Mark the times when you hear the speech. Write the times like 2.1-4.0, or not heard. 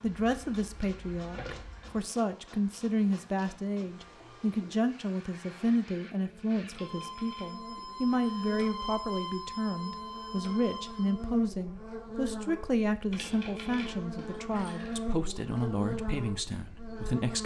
0.0-17.4.